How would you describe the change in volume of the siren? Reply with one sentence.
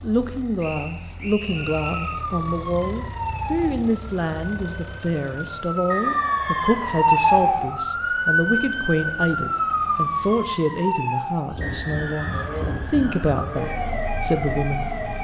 The volume of the siren goes up, then down.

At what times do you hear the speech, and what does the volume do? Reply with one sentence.
The speech can be heard from 0.0 to 14.9 s, at a steady volume.